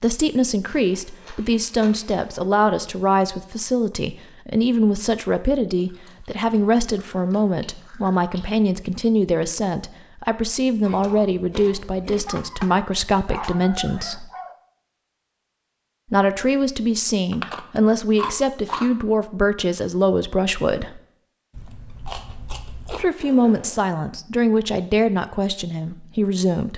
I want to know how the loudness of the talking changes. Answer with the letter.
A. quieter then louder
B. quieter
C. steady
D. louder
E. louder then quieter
C.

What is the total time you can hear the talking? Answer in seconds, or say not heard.
23 s.